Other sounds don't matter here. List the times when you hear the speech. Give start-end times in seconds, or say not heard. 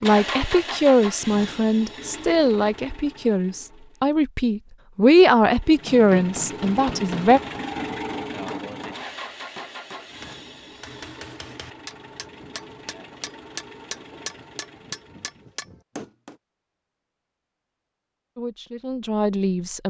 0.0-7.4, 18.4-19.8.